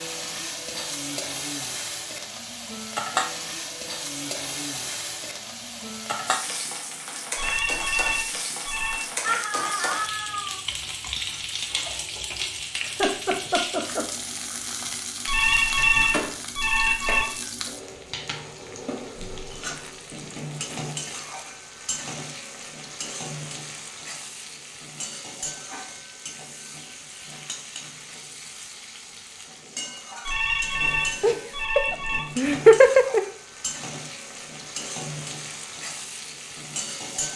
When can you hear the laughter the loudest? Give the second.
33 s.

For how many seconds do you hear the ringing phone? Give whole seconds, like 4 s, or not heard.
6 s.